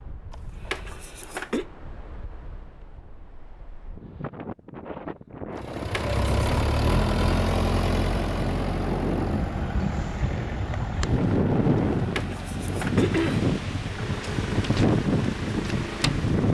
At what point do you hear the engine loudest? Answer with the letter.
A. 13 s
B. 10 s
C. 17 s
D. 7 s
D.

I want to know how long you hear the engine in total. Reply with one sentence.
You can hear the engine for 11 seconds altogether.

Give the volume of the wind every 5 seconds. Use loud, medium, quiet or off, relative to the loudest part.
quiet, medium, loud, loud.